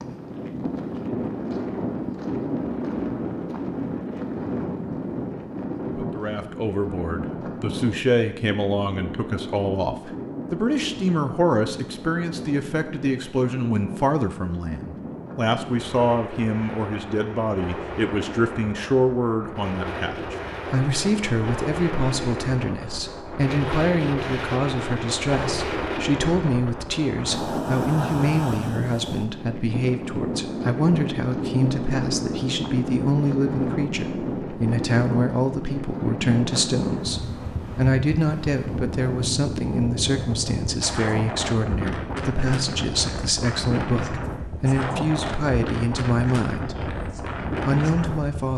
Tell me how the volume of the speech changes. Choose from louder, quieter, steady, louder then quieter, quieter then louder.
steady.